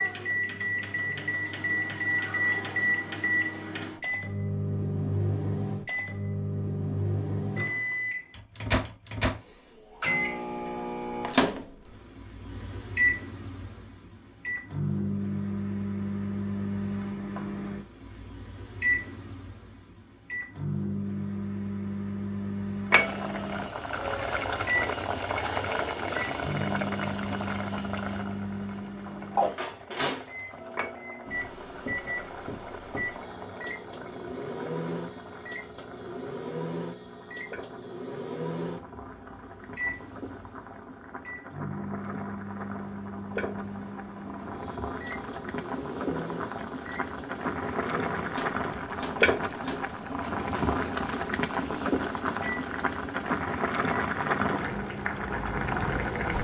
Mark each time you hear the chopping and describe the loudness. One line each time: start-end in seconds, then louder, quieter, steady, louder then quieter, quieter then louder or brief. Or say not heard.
not heard.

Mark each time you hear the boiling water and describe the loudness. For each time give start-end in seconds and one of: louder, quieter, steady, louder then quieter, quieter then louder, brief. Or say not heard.
22.9-56.3 quieter then louder.